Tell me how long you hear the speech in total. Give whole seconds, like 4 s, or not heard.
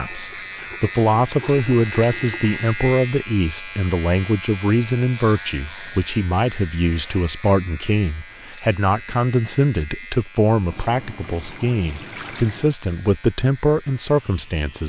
15 s.